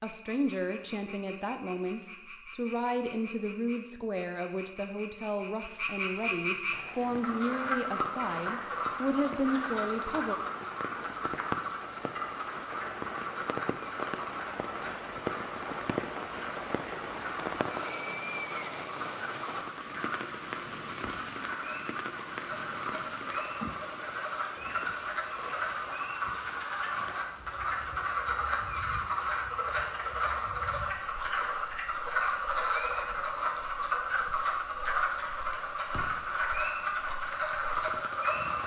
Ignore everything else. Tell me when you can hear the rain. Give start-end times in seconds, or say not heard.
6.7-38.6.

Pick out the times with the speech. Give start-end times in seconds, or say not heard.
0.0-10.3.